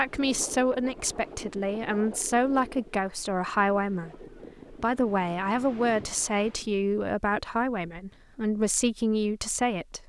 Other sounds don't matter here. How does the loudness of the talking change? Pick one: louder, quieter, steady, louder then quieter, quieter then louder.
steady.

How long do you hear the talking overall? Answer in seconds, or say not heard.
10 s.